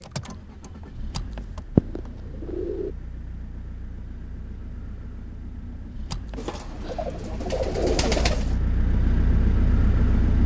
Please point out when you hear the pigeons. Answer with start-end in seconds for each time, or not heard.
1.8-2.9, 6.3-8.6.